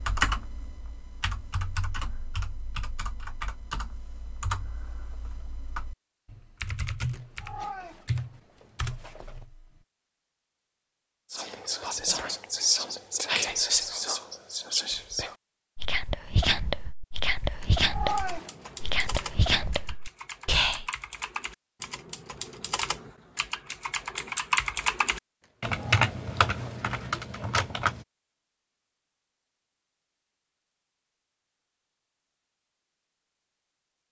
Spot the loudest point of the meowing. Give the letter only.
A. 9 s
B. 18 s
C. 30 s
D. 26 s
B.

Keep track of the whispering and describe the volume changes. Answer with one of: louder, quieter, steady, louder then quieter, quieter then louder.
steady.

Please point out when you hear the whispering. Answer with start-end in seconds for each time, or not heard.
11.3-20.9.